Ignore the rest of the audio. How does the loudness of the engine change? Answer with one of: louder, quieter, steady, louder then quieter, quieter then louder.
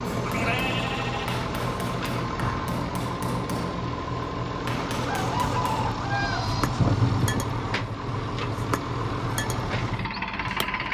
steady.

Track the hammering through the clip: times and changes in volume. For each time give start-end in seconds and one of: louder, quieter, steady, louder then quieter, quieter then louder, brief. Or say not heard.
0.1-10.8 steady.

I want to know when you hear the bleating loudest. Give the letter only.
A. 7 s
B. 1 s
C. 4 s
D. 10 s
A.